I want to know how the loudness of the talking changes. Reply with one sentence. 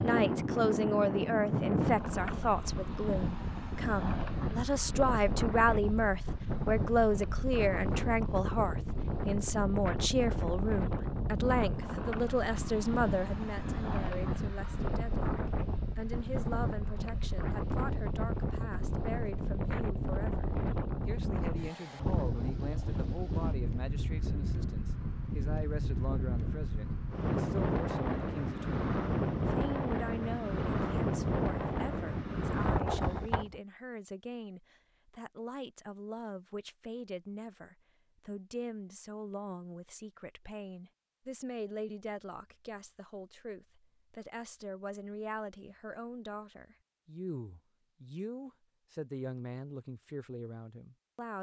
The loudness of the talking goes down.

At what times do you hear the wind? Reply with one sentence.
The wind can be heard from 0.0 to 33.6 s.